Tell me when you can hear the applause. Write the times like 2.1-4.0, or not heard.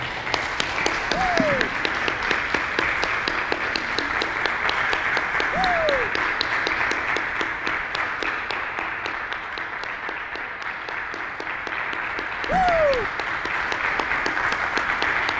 0.0-15.3.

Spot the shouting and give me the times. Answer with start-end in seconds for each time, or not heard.
1.1-1.7, 5.5-6.1, 12.4-13.1.